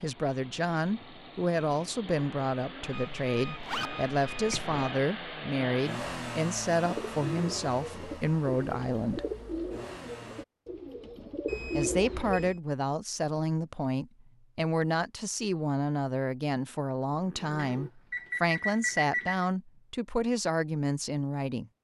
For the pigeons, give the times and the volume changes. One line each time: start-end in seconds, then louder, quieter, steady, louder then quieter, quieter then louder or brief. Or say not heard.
6.8-12.6 quieter then louder.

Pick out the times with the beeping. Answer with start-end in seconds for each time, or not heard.
2.9-4.8, 11.4-12.6, 17.6-19.4.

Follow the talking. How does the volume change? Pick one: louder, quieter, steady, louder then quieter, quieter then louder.
steady.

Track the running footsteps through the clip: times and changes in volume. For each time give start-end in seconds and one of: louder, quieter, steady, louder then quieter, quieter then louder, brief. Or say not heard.
not heard.